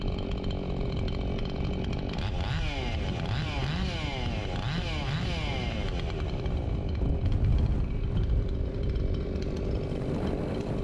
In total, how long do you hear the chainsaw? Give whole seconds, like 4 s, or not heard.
11 s.